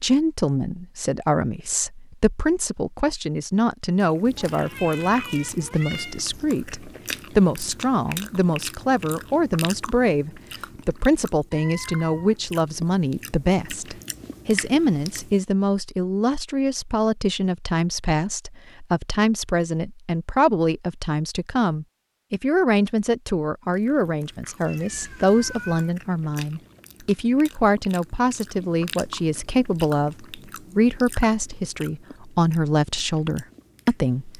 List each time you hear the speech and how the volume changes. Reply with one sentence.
The speech can be heard from 0.0 to 34.3 s, at a steady volume.